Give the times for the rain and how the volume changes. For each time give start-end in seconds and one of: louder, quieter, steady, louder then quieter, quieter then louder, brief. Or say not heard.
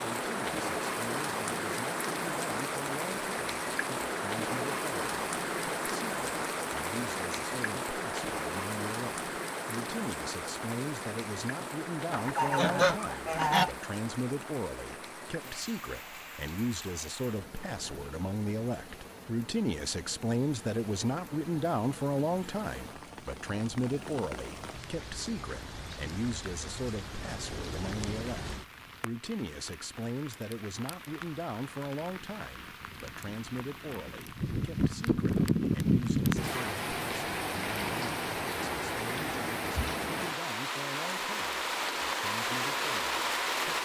0.0-43.8 quieter then louder.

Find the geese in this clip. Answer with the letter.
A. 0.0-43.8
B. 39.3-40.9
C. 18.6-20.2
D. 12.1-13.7
D.